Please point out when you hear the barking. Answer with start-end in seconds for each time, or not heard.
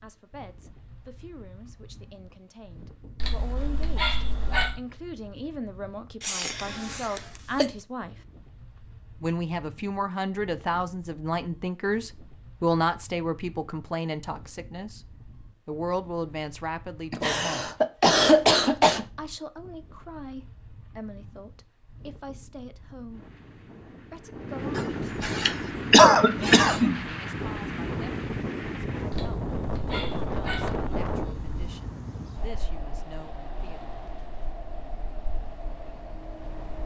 3.1-4.8, 29.1-31.6.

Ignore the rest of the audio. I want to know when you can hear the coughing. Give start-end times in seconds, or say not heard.
6.2-7.7, 17.1-19.1, 24.8-27.0.